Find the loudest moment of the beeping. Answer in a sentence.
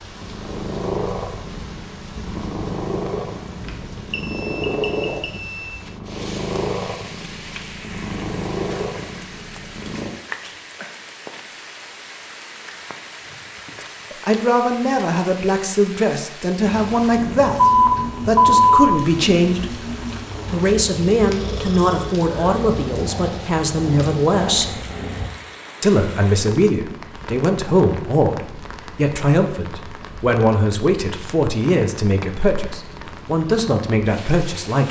The loudest moment of the beeping is at 18 seconds.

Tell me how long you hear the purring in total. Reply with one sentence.
The purring can be heard for 19 seconds in total.